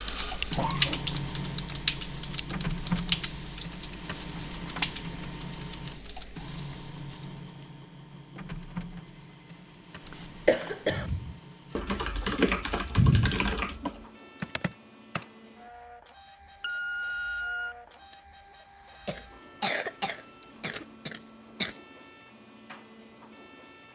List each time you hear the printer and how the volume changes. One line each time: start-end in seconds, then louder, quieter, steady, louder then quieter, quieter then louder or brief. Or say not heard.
0.0-23.9 quieter.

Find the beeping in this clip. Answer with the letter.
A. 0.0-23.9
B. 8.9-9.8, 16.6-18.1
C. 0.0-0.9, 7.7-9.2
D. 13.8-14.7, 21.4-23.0
B.